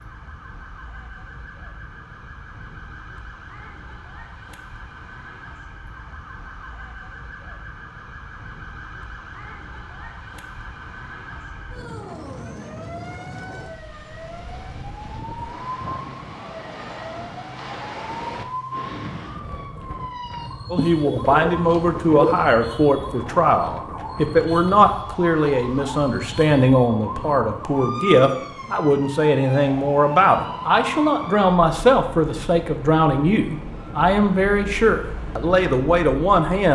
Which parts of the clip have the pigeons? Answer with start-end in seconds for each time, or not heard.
20.8-22.4.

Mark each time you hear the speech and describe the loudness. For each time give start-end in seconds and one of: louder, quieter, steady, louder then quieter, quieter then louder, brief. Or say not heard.
20.7-36.7 steady.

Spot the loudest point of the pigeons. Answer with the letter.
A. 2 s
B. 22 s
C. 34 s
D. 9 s
B.